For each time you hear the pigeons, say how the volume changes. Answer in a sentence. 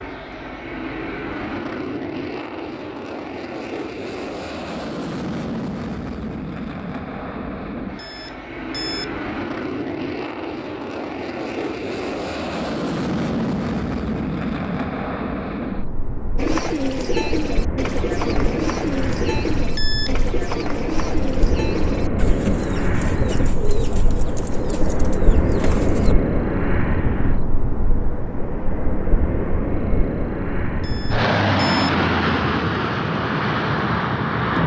You can hear the pigeons from 16.4 to 26.1 s, getting quieter.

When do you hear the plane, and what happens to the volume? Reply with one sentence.
The plane can be heard from 0.0 to 34.6 s, getting louder.